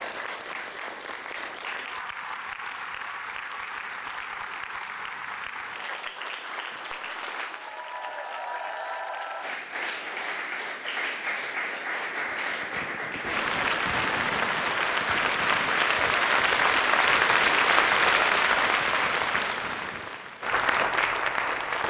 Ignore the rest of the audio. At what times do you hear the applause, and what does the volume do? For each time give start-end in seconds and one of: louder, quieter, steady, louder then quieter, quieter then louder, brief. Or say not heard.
0.0-21.8 louder.